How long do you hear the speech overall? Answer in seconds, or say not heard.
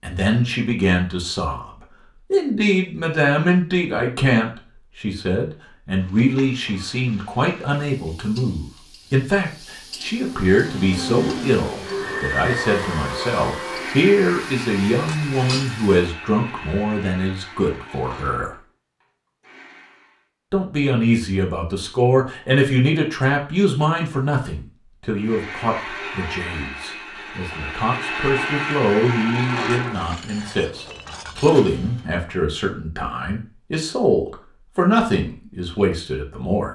34 s.